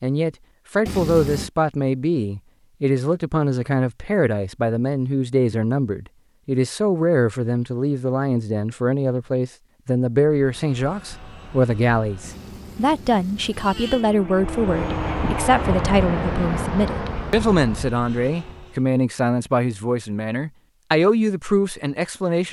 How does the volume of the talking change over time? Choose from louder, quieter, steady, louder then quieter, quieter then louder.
steady.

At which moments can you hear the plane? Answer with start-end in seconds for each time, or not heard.
10.3-18.8.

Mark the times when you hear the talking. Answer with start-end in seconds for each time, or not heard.
0.0-22.4.